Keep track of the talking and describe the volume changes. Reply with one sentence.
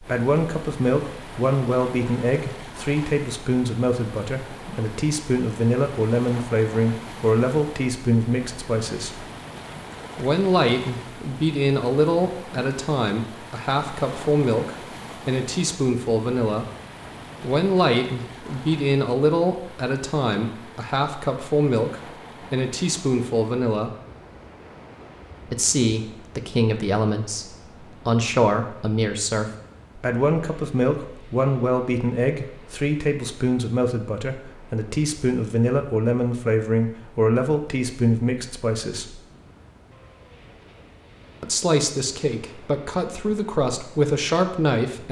The loudness of the talking stays about the same.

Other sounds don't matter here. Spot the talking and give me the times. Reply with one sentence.
You can hear the talking from 0.0 to 9.2 s, from 10.2 to 16.6 s, from 17.4 to 23.9 s, from 25.5 to 39.2 s and from 41.4 to 45.0 s.